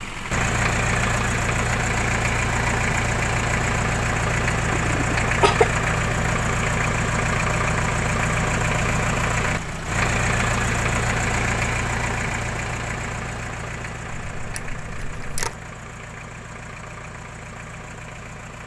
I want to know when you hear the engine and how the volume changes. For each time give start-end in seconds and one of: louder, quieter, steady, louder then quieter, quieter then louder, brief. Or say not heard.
0.0-18.6 quieter.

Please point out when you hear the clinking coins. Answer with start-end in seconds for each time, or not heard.
14.3-15.6.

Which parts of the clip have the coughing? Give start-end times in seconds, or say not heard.
4.7-5.7.